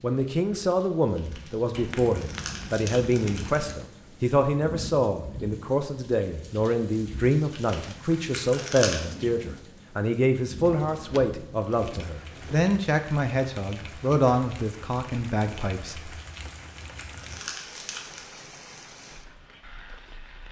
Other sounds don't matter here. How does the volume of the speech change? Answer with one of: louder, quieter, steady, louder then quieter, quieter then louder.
steady.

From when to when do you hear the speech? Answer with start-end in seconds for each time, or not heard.
0.0-16.1.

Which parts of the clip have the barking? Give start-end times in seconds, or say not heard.
not heard.